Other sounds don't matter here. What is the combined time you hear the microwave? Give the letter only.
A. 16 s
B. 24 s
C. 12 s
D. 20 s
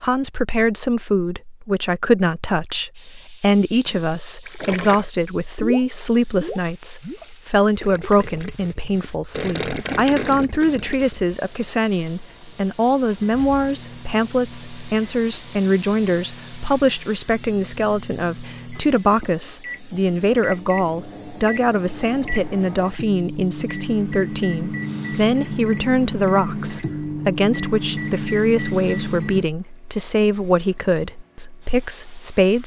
A.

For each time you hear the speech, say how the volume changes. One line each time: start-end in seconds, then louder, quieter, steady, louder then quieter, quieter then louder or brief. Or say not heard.
0.0-32.6 steady.